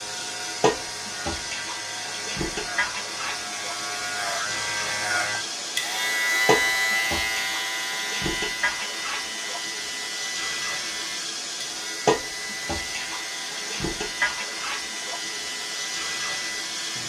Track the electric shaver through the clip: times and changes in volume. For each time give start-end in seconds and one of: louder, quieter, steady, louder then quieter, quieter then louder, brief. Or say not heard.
0.0-17.0 louder then quieter.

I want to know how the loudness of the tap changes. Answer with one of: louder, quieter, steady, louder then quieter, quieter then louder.
steady.